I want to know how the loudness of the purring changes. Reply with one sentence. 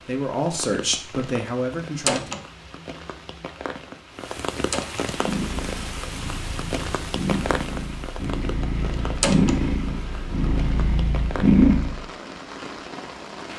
The loudness of the purring goes up.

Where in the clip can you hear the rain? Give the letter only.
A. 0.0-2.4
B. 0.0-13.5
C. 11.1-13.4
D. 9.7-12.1
B.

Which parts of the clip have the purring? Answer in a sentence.
You can hear the purring from 5.1 to 12.1 s.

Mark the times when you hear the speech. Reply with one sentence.
You can hear the speech from 0.0 to 2.4 s.